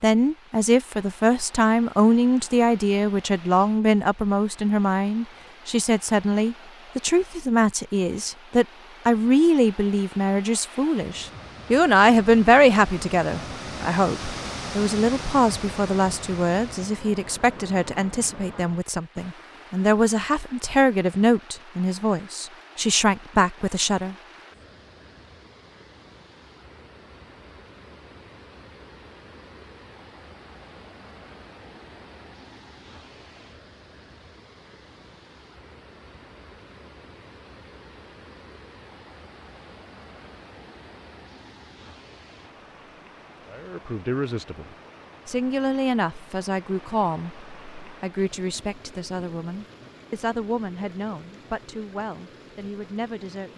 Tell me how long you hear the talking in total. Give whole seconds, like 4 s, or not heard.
34 s.